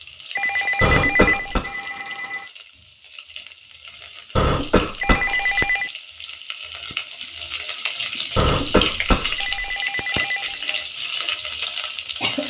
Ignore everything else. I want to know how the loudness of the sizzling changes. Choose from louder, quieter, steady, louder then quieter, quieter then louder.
louder.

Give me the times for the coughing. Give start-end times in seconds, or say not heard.
0.8-1.6, 4.3-5.5, 8.3-9.6.